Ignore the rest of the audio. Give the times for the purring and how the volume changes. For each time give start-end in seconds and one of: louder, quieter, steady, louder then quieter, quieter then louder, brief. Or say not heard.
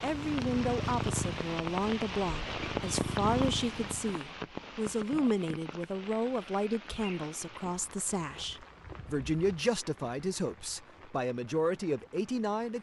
0.0-4.2 quieter then louder.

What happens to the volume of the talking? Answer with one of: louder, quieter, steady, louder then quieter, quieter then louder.
steady.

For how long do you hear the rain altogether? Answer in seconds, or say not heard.
13 s.